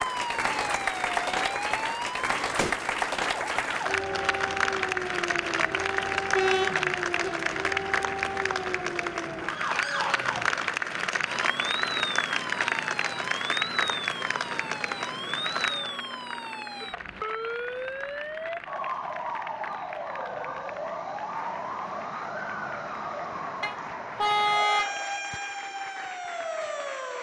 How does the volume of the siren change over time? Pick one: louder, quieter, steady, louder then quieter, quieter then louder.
steady.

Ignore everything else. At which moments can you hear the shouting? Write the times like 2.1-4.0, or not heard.
not heard.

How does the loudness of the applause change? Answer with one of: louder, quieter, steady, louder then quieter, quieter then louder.
quieter.